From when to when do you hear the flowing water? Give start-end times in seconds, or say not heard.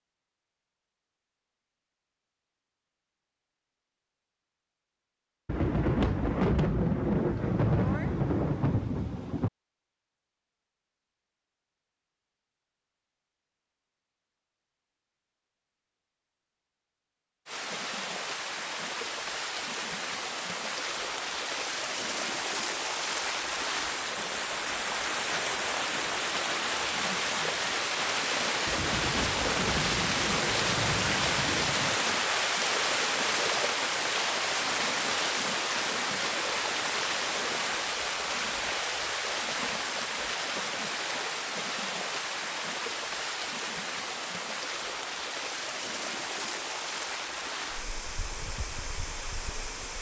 17.4-49.9.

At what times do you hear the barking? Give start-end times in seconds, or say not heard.
not heard.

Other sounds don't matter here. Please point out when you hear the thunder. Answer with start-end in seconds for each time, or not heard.
5.5-9.5, 28.6-32.0.